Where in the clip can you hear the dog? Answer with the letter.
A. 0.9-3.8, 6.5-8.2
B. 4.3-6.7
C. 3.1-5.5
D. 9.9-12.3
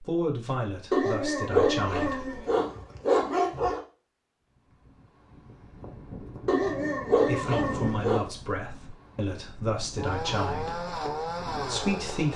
A.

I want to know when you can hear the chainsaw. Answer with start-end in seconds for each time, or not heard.
9.9-12.3.